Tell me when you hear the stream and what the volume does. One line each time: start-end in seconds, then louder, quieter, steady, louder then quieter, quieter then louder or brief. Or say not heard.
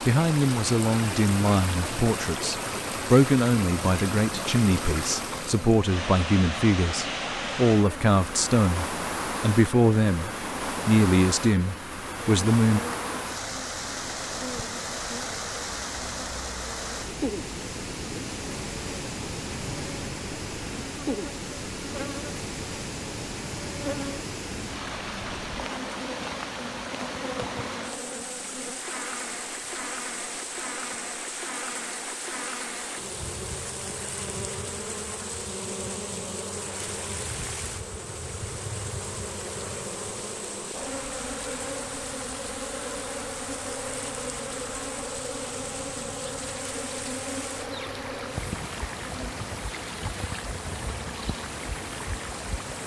0.0-52.8 quieter.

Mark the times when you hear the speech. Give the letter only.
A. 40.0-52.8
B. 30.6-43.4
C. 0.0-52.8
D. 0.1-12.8
D.